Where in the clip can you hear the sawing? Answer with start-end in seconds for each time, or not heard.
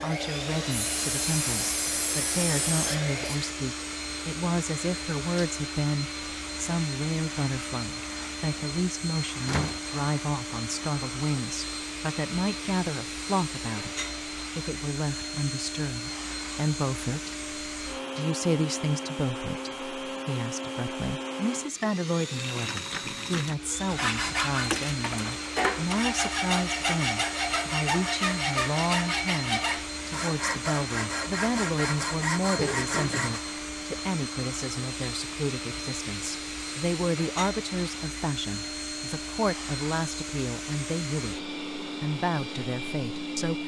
0.0-3.5, 23.9-33.4.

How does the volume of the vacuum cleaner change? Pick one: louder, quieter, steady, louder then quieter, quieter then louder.
steady.